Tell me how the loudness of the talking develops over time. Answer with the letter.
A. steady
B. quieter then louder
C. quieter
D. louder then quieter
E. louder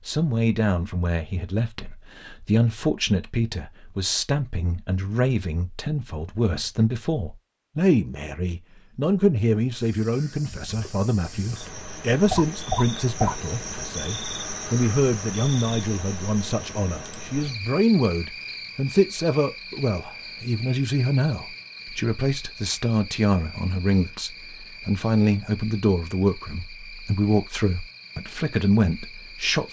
A.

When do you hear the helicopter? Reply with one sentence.
You can't hear the helicopter here.